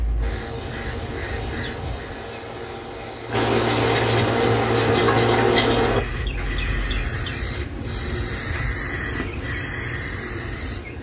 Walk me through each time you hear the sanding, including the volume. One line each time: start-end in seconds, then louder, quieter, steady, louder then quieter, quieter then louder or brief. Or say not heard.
0.1-6.0 louder.